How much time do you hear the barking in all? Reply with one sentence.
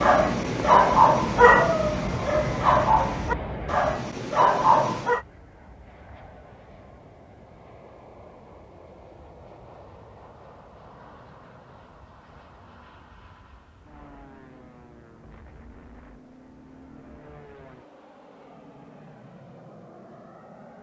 You can hear the barking for 5 seconds altogether.